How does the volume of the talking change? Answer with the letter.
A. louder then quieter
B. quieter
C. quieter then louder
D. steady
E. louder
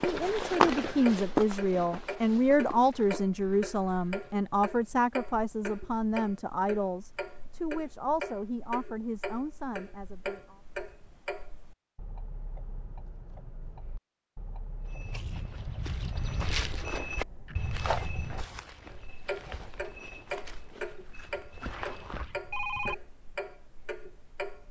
B.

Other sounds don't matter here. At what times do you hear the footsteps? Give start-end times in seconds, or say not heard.
0.0-4.3, 14.8-22.4.